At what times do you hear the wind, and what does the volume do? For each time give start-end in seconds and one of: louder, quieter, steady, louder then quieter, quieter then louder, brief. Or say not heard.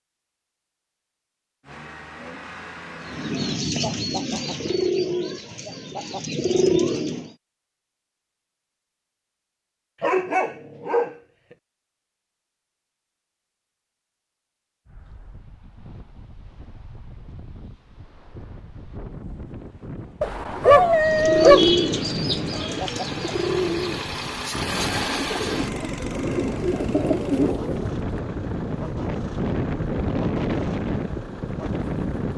14.8-32.3 louder.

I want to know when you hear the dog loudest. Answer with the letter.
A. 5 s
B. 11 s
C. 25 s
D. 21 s
D.